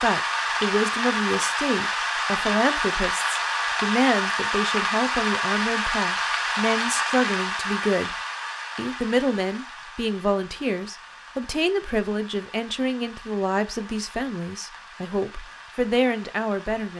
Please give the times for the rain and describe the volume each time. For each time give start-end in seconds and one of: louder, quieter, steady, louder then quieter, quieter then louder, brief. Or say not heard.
0.0-16.9 quieter.